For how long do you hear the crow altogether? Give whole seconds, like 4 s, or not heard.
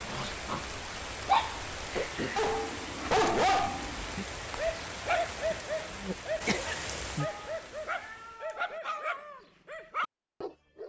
not heard.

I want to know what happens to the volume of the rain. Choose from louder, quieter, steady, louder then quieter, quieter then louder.
steady.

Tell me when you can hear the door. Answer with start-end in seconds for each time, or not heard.
not heard.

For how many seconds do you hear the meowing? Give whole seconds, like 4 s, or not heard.
2 s.